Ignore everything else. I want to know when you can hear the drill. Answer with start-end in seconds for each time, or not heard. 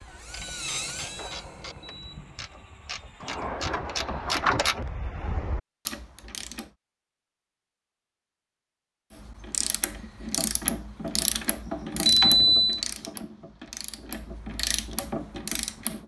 0.0-3.4.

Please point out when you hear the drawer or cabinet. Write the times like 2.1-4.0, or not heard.
3.2-4.7.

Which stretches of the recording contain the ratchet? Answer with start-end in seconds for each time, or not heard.
0.0-6.7, 9.2-16.0.